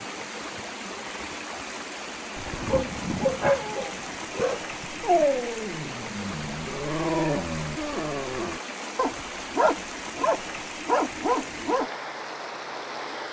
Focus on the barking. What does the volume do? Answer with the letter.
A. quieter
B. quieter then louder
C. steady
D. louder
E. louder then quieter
C.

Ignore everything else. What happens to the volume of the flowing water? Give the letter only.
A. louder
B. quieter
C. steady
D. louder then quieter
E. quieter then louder
C.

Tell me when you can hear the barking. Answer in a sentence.
You can hear the barking from 2.5 to 11.9 s.